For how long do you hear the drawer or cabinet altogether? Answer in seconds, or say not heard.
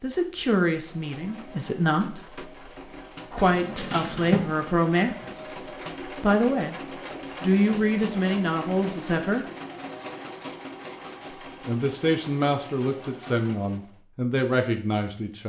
2 s.